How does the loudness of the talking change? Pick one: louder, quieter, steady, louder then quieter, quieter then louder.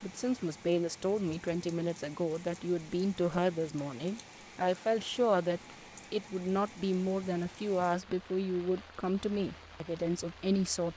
steady.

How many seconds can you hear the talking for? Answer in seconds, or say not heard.
11 s.